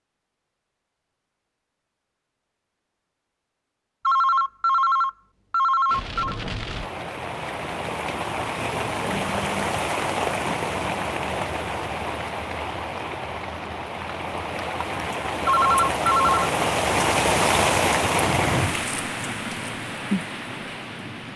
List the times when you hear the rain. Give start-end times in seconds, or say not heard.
5.8-21.3.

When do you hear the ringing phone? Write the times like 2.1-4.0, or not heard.
4.0-6.3, 15.4-16.6.